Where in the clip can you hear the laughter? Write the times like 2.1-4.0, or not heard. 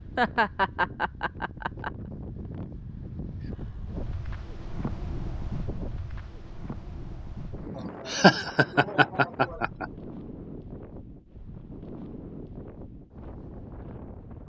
0.1-1.9, 8.1-9.8.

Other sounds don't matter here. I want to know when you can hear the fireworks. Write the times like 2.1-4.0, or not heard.
not heard.